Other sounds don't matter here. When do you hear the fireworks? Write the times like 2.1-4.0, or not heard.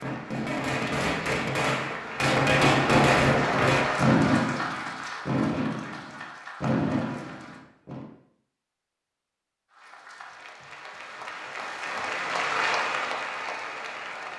0.0-8.1.